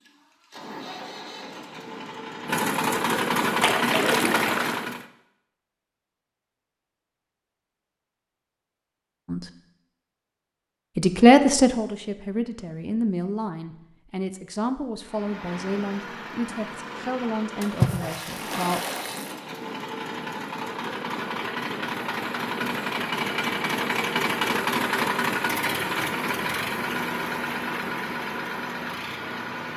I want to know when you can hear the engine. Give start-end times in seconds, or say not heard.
0.0-5.0, 14.9-29.7.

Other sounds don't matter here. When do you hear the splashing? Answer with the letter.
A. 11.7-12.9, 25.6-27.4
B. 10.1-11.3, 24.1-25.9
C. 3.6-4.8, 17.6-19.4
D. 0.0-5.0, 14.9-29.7
C.